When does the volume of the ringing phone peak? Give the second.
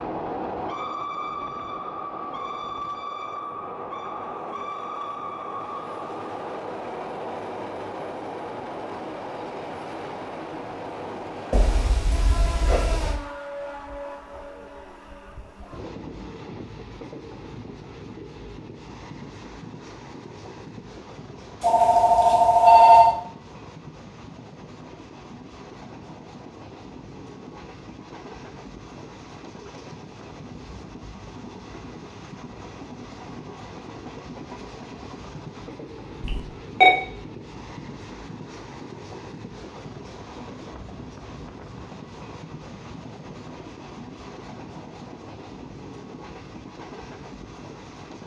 23 s.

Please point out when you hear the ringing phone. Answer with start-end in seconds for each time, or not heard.
11.5-13.2, 21.6-23.1, 36.2-37.0.